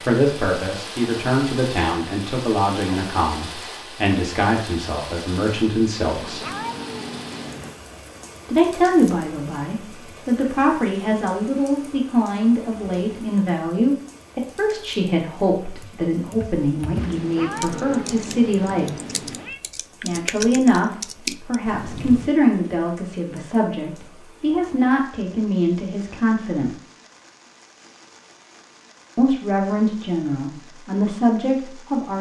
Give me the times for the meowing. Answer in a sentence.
You can hear the meowing from 6.0 to 7.8 s and from 16.9 to 19.6 s.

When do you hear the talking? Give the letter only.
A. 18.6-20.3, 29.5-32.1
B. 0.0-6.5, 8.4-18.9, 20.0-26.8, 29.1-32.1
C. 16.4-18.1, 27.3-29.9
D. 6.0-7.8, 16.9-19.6
B.